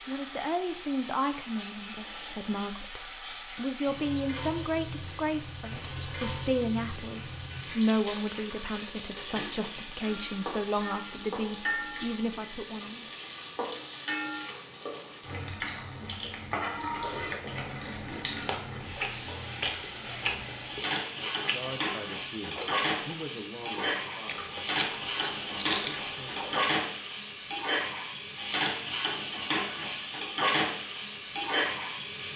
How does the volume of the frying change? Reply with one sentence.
The volume of the frying goes up.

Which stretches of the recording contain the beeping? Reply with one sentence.
The beeping can be heard from 1.9 to 2.6 s and from 20.4 to 20.9 s.